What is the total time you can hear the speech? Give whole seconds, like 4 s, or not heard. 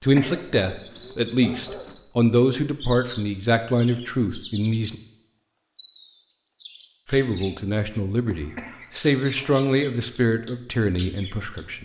10 s.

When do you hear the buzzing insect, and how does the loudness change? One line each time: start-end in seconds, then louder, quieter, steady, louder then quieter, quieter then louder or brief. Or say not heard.
not heard.